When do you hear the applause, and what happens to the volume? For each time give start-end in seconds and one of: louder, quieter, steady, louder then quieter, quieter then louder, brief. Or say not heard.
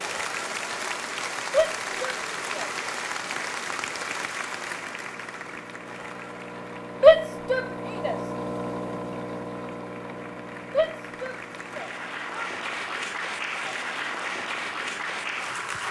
0.0-15.8 quieter then louder.